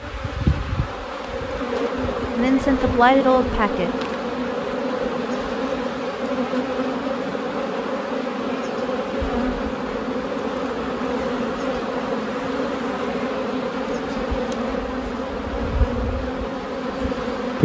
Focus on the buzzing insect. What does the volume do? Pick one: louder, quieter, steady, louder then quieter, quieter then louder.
steady.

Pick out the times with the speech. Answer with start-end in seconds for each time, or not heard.
2.4-3.9.